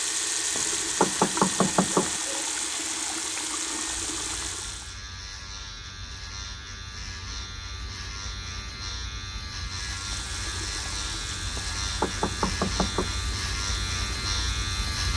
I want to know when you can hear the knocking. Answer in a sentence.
The knocking can be heard from 0.6 to 2.2 s and from 11.6 to 13.2 s.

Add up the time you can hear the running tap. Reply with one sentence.
The running tap can be heard for 10 seconds in total.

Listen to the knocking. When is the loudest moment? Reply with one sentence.
The loudest moment of the knocking is at 1 second.